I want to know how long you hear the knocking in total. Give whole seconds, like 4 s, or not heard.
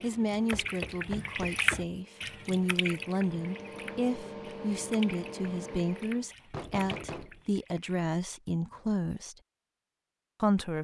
3 s.